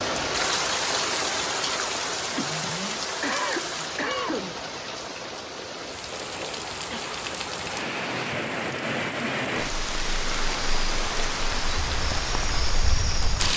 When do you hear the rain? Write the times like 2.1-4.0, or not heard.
0.0-13.5.